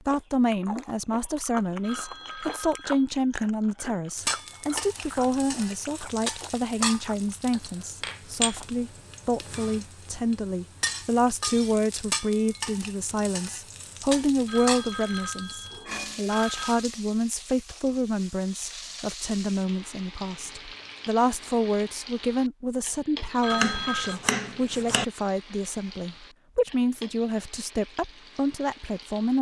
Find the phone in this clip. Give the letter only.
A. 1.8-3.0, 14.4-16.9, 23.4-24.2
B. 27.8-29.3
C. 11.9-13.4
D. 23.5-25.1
A.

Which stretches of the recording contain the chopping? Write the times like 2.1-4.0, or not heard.
23.5-25.1.